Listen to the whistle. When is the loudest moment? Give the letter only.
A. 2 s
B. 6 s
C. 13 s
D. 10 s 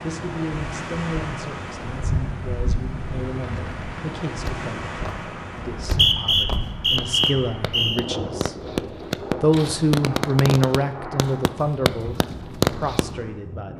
B.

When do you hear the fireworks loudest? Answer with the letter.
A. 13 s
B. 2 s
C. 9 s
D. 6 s
A.